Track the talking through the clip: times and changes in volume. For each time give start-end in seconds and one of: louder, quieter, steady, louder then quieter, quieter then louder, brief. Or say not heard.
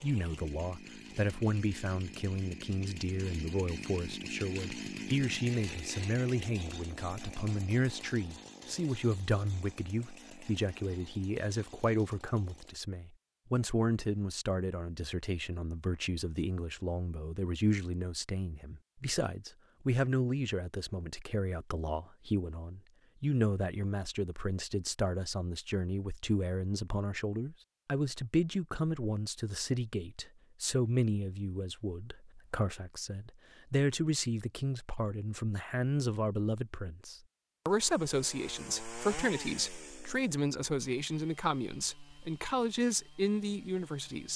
0.0-44.3 steady.